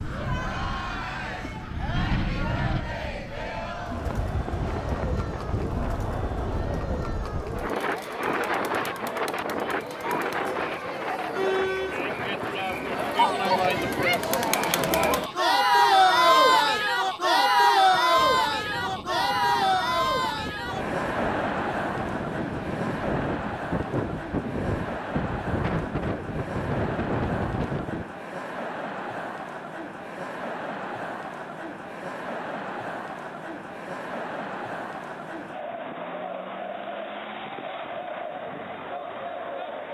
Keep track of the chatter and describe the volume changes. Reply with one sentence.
The loudness of the chatter goes up, then down.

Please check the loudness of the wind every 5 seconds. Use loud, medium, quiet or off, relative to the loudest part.
loud, loud, loud, quiet, loud, loud, off, off.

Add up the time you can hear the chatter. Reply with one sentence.
You can hear the chatter for 40 seconds altogether.